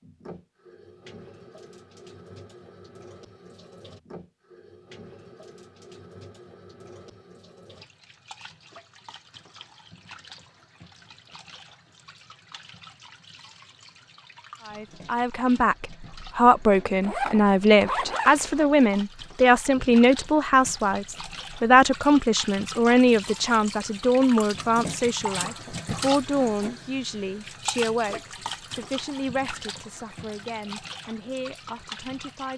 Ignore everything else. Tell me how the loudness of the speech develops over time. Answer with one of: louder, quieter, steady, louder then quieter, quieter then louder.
quieter.